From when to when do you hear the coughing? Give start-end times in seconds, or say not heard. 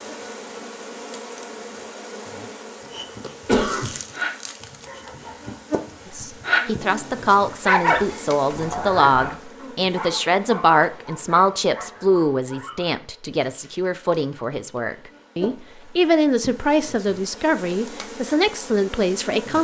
3.5-3.9.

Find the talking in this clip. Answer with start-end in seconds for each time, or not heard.
6.1-19.5.